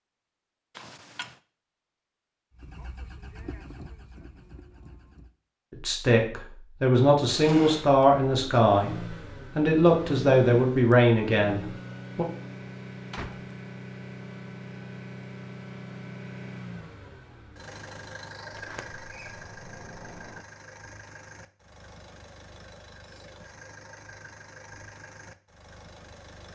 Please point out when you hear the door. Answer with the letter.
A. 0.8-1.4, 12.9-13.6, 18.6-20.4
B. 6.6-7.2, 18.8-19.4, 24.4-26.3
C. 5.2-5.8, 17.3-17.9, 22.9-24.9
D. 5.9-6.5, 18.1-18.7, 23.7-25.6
A.